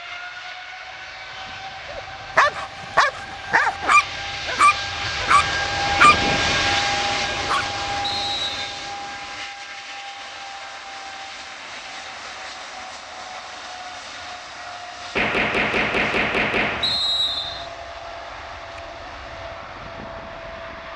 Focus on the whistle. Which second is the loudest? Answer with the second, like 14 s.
17 s.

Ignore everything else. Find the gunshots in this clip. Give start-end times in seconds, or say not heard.
15.2-16.9.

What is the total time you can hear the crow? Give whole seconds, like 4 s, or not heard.
not heard.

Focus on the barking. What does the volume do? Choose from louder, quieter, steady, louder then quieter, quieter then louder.
quieter.